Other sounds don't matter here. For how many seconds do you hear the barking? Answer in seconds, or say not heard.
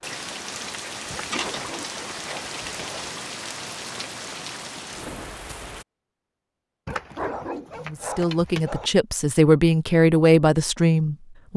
4 s.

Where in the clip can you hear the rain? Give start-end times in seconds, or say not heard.
0.0-5.8.